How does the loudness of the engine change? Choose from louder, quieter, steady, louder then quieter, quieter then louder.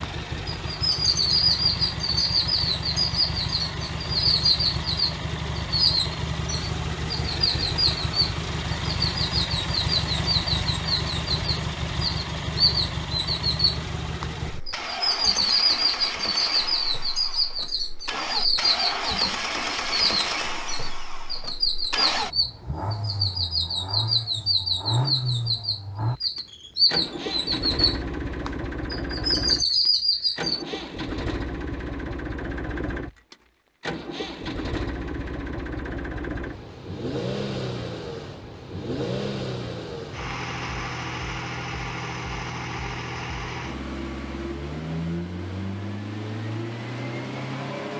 steady.